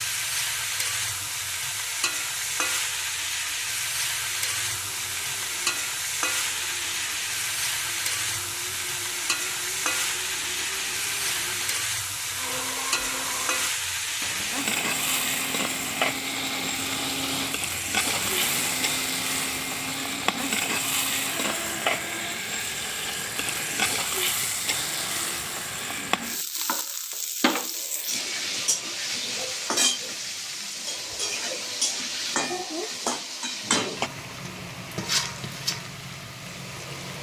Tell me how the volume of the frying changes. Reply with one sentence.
The loudness of the frying stays about the same.